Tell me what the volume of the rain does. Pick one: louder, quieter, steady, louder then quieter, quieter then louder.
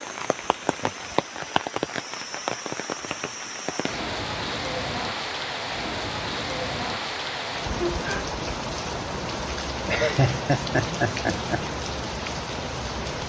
steady.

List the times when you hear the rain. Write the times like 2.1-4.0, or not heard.
0.0-13.2.